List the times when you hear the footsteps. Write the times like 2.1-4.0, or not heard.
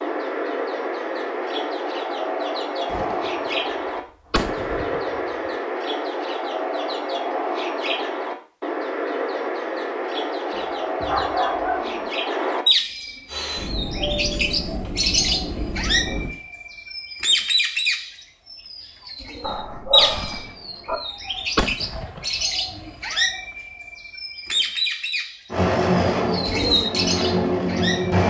not heard.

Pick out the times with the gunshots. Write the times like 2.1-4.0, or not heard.
2.9-3.3, 4.3-5.5, 20.1-20.6, 21.6-22.4.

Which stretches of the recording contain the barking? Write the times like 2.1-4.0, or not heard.
10.5-12.1, 19.4-20.9.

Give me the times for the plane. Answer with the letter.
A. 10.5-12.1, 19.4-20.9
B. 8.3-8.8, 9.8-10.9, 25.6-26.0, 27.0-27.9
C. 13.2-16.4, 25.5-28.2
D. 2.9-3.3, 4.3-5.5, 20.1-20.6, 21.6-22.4
C.